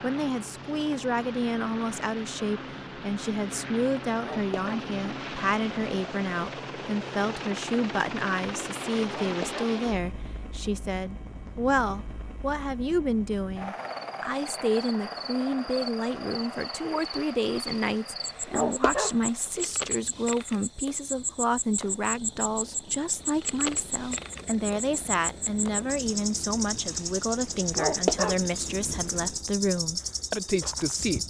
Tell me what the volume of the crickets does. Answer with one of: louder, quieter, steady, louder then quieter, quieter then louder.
louder.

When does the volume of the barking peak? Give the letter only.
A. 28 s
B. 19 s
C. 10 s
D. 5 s
A.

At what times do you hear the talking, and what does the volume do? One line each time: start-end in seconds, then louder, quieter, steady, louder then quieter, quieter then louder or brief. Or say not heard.
0.0-31.2 steady.